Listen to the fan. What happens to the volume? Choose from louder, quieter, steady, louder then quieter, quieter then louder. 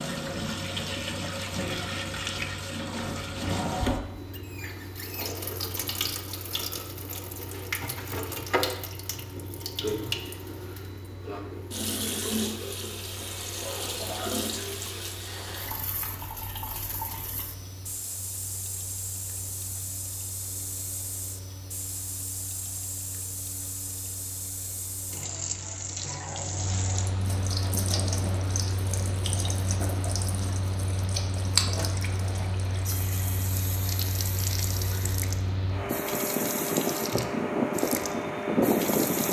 louder.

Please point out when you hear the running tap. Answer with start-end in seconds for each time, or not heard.
0.0-39.2.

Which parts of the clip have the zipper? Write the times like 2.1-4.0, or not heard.
13.6-14.3.